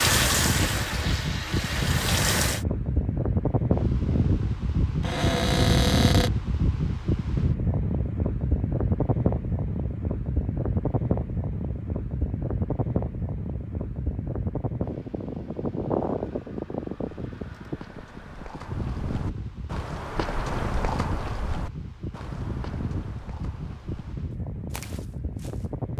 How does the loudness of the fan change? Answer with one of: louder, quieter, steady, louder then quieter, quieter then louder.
quieter.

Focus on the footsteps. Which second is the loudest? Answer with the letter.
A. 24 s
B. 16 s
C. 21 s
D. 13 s
C.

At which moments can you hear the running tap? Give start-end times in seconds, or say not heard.
0.0-2.6.